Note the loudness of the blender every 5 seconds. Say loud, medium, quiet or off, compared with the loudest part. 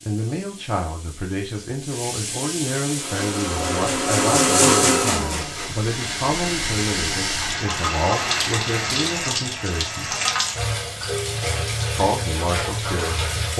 loud, medium, off.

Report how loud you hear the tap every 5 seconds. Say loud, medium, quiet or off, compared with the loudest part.
medium, loud, loud.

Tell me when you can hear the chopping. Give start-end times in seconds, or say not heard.
not heard.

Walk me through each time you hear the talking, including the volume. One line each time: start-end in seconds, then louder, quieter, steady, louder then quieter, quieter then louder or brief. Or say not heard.
0.1-10.2 steady
11.9-13.5 brief.